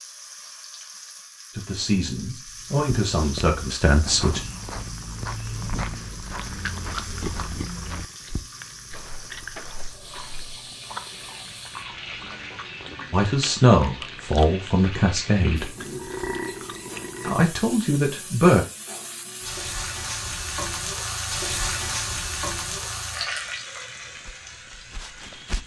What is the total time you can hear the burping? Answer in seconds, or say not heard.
2 s.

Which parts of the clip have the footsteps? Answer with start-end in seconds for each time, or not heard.
2.5-10.8, 24.1-25.6.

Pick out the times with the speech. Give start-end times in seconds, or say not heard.
1.6-4.4, 13.1-15.7, 17.2-18.6.